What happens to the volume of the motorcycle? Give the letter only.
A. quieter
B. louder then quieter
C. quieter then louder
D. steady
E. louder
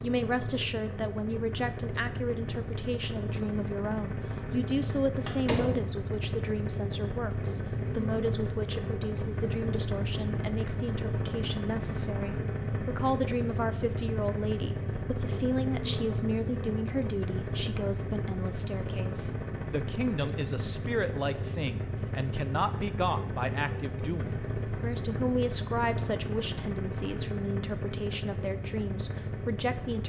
D.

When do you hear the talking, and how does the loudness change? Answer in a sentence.
You can hear the talking from 0.0 to 30.0 s, at a steady volume.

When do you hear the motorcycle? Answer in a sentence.
The motorcycle can be heard from 0.0 to 30.0 s.